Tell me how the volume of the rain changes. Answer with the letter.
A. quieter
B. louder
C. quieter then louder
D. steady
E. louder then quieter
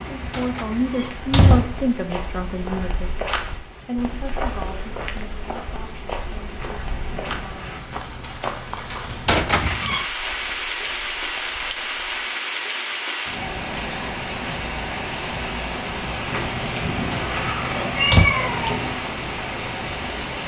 B.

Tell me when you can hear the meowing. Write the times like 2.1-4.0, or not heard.
6.5-7.8, 16.3-19.0.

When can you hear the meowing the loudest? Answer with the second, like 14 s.
18 s.